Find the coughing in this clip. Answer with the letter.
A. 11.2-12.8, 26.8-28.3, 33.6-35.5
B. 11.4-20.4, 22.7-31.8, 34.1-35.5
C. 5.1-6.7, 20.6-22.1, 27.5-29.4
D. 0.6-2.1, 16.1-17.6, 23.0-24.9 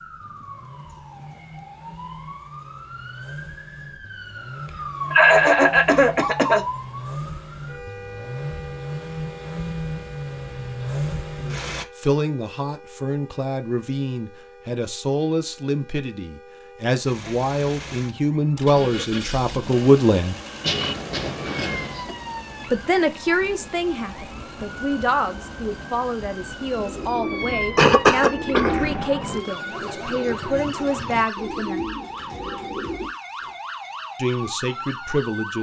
C.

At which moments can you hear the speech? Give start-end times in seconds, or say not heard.
11.4-20.4, 22.7-31.8, 34.1-35.5.